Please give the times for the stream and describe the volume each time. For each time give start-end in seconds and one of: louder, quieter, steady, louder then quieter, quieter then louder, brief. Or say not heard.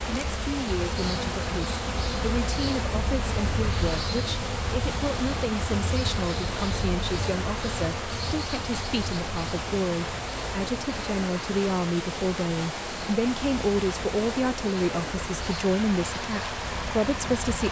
0.0-17.6 steady.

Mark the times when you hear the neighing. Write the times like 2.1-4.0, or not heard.
not heard.